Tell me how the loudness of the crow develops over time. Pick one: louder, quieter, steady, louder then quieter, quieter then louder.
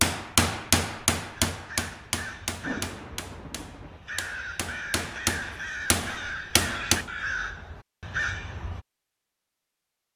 louder.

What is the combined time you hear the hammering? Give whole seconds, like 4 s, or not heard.
7 s.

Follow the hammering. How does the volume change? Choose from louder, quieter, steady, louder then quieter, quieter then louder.
quieter then louder.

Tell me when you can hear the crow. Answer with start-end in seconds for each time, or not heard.
1.5-8.8.